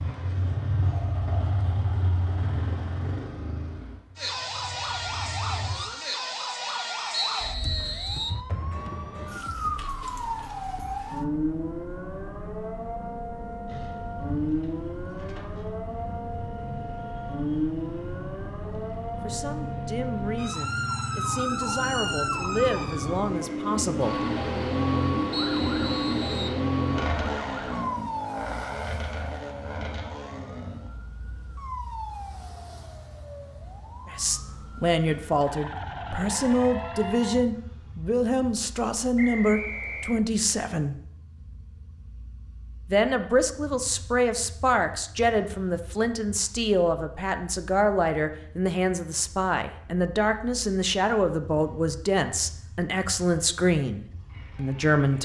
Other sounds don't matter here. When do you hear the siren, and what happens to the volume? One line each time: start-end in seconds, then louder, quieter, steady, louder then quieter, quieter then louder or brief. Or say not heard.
4.2-37.5 quieter.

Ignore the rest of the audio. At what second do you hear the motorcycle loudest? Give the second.
25 s.